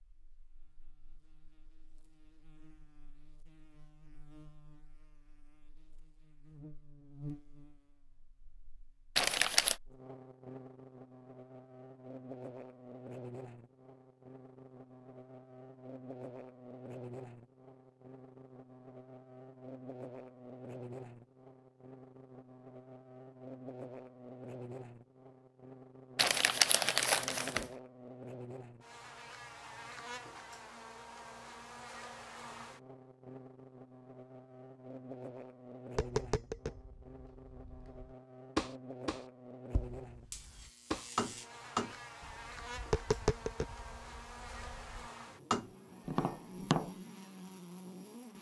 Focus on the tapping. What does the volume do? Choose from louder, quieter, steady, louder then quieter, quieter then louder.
louder.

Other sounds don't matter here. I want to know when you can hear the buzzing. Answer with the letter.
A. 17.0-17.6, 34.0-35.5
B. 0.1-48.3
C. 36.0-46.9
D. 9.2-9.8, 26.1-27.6
B.